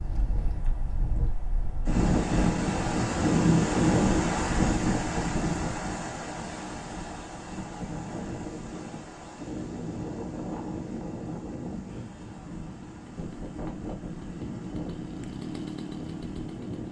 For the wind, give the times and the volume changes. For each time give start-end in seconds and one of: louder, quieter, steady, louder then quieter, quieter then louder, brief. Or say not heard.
0.0-16.8 quieter.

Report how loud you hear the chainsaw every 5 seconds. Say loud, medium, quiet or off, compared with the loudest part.
off, off, medium, loud.